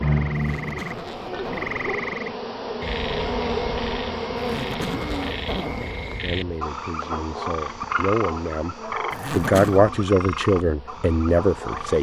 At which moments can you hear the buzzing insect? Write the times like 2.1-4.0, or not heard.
0.0-11.9.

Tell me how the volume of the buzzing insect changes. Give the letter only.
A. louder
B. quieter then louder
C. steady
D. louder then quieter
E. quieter
D.